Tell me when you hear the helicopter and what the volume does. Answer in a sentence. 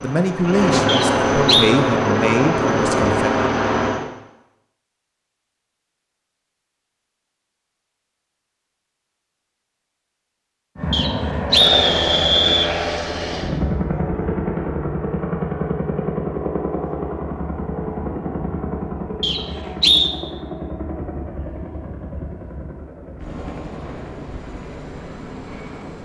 The helicopter can be heard from 0.0 to 4.1 s, at a steady volume; and from 10.8 to 26.0 s, getting quieter.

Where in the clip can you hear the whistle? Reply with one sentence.
The whistle can be heard from 0.8 to 1.7 s, from 10.9 to 12.7 s and from 19.2 to 20.1 s.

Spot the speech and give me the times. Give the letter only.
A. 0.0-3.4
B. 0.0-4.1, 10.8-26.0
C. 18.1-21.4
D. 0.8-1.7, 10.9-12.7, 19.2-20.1
A.